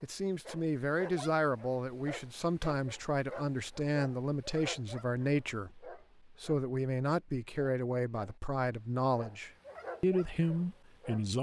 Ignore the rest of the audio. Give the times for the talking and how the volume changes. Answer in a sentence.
The talking can be heard from 0.0 to 11.3 s, at a steady volume.